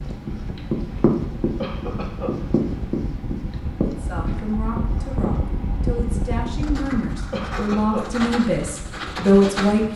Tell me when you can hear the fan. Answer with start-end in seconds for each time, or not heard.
0.0-9.9.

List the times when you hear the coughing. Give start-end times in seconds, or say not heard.
1.6-2.4, 7.3-8.1.